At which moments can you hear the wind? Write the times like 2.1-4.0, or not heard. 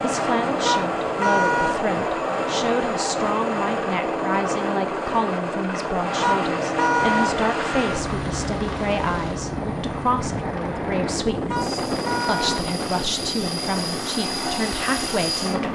7.0-15.6.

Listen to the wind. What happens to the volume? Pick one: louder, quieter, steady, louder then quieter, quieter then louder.
louder then quieter.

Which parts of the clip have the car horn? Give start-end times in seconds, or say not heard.
0.7-1.8, 6.2-7.3, 11.5-12.6.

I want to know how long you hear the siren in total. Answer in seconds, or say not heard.
not heard.